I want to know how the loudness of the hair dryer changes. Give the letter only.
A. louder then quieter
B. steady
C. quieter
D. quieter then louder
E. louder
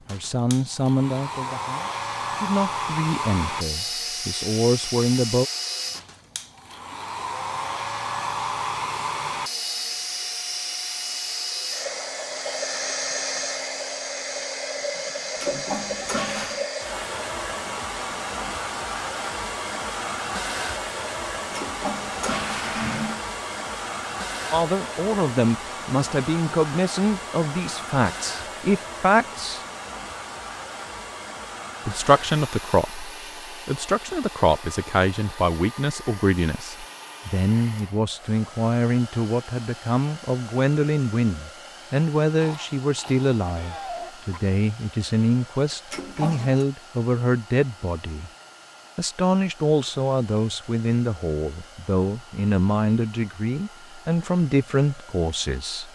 C.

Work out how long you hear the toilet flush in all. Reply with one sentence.
You can hear the toilet flush for 4 seconds altogether.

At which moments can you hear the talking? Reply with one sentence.
You can hear the talking from 0.1 to 5.5 s, from 24.5 to 29.6 s, from 31.9 to 48.3 s and from 49.0 to 55.9 s.